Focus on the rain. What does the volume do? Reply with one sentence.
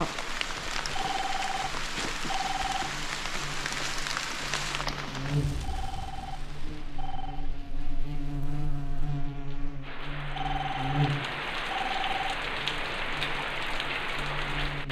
The loudness of the rain goes down, then up.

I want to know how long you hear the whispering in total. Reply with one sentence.
You can't hear the whispering here.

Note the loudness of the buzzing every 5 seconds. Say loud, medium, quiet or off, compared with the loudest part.
medium, loud, loud.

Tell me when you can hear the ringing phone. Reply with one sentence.
You can hear the ringing phone from 0.9 to 2.9 s, from 5.6 to 7.5 s and from 10.3 to 12.3 s.